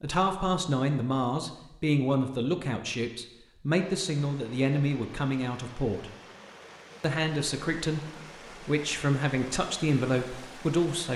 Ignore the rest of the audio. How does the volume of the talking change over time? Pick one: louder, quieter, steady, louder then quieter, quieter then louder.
steady.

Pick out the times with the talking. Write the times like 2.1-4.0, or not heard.
0.0-6.2, 7.0-11.1.